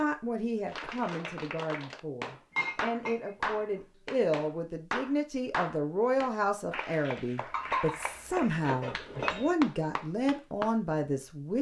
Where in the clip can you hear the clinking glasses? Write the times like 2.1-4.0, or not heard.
2.5-3.6, 7.5-9.5.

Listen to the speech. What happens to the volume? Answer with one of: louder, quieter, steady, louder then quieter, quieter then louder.
louder.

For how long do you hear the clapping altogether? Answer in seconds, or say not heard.
10 s.